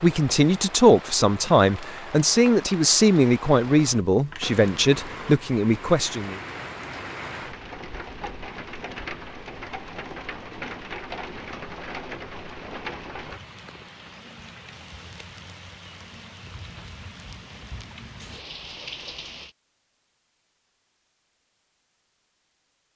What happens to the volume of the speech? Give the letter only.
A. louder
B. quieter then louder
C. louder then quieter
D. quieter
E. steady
E.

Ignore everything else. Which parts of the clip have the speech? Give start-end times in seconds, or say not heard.
0.0-6.4.